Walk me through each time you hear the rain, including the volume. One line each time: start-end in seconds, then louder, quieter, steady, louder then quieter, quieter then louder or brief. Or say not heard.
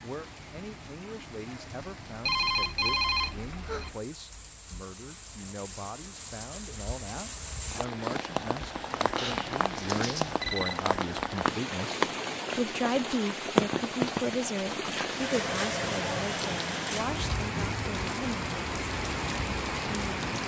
0.0-20.4 louder.